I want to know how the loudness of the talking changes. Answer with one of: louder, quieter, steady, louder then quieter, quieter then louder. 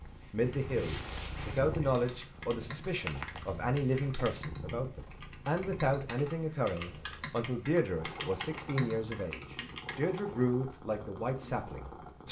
steady.